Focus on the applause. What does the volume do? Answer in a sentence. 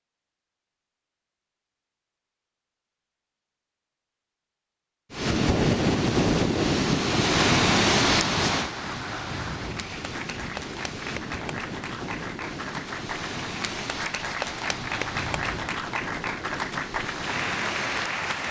The volume of the applause goes up.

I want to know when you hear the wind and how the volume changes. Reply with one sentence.
The wind can be heard from 5.1 to 18.4 s, getting quieter.